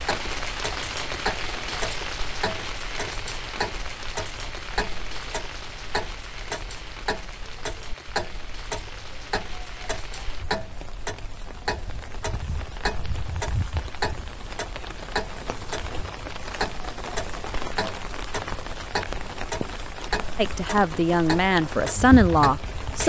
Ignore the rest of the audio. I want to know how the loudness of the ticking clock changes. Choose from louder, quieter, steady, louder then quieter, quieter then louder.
steady.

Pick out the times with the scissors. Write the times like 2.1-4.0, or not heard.
not heard.